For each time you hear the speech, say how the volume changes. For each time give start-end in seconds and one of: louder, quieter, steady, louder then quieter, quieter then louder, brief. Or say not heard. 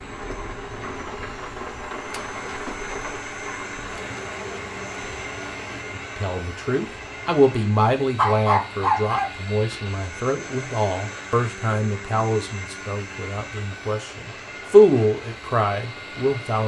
5.9-16.6 quieter then louder.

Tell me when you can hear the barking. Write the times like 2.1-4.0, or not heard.
8.2-9.3.